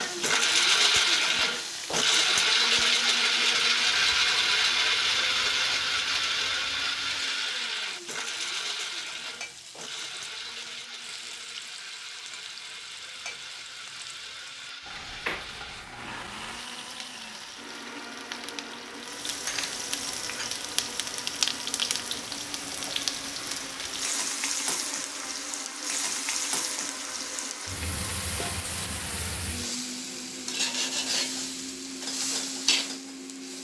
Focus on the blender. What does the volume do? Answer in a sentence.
The loudness of the blender goes down.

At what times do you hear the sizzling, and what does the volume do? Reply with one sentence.
The sizzling can be heard from 0.0 to 33.6 s, getting louder.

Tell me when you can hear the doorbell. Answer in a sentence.
You can't hear the doorbell here.